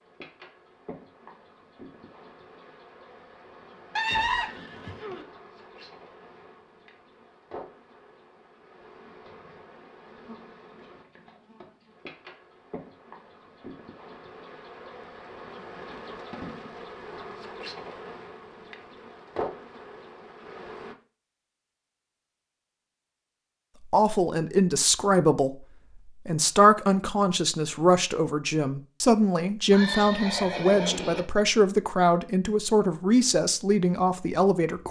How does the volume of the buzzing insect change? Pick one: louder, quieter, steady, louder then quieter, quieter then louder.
louder.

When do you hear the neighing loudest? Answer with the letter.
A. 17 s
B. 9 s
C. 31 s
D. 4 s
D.